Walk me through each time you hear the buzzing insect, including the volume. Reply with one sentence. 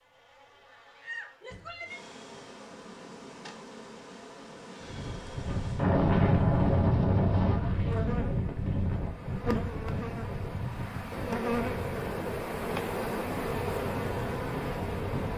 You can hear the buzzing insect from 0.0 to 15.3 s, getting louder.